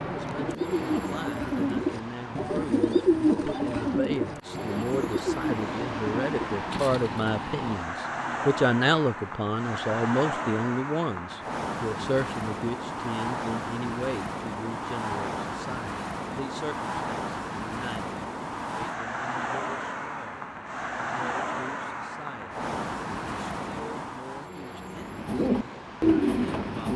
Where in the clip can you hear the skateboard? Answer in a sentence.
You can't hear the skateboard here.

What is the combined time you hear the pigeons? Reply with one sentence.
You can hear the pigeons for 9 seconds altogether.